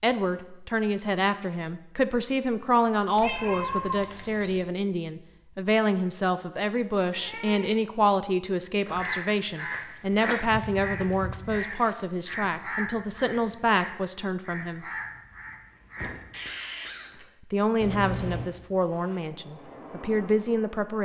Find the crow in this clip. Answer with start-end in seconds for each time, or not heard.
8.8-17.2.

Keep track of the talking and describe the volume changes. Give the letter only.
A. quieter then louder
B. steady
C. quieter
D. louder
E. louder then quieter
B.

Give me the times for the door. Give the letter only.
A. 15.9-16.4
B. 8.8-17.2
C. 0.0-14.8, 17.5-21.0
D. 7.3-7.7
A.